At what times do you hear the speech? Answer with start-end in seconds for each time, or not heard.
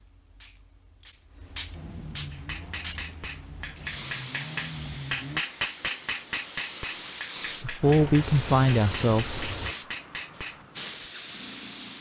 7.6-9.5.